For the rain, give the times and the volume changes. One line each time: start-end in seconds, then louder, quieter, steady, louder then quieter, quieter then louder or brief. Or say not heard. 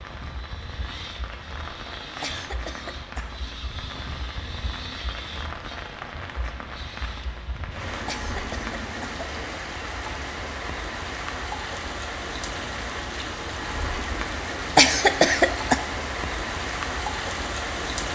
0.0-18.0 louder.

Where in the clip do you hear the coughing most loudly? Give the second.
15 s.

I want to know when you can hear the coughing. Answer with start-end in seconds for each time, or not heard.
2.2-3.4, 8.1-9.4, 14.8-15.8.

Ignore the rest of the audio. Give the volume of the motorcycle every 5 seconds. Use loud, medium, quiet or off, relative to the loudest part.
loud, loud, off, off.